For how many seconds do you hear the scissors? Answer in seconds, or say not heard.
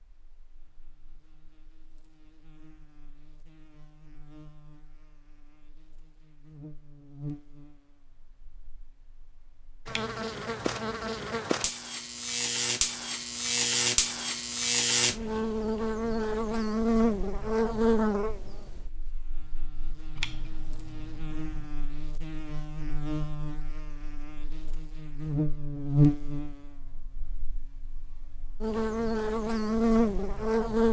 3 s.